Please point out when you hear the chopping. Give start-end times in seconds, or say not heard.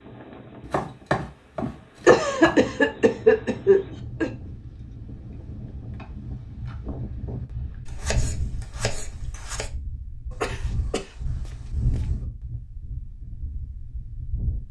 0.6-2.6, 7.8-9.7.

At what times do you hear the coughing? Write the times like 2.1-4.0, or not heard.
1.6-4.3, 10.3-12.1.